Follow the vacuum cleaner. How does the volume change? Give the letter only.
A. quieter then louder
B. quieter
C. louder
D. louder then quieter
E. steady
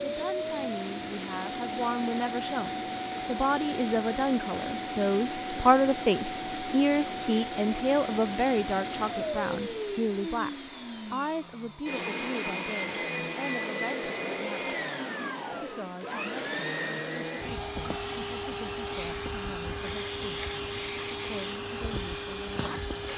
E.